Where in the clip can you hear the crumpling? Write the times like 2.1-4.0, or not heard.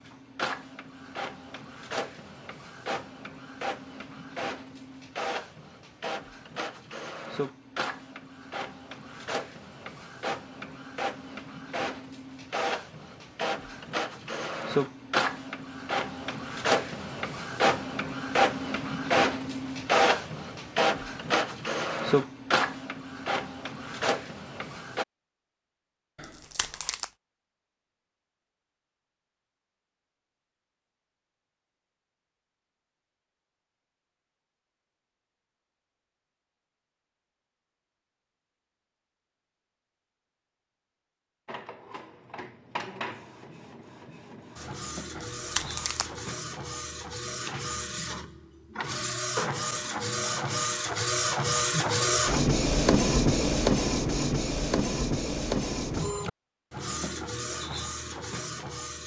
26.1-27.1, 45.1-46.1.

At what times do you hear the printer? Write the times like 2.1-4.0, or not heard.
0.0-25.1, 41.5-59.0.